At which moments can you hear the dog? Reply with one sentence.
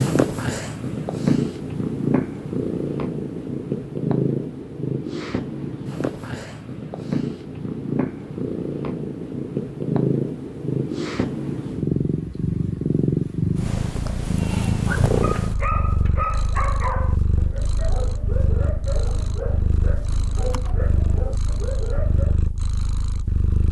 You can hear the dog from 14.3 to 22.4 s.